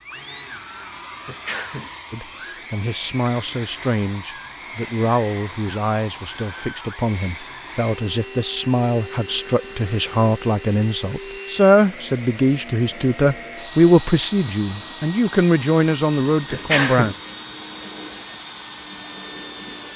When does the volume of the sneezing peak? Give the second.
17 s.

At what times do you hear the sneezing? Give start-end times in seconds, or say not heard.
1.2-1.9, 16.5-17.1.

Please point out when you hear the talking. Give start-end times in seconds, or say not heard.
2.1-17.1.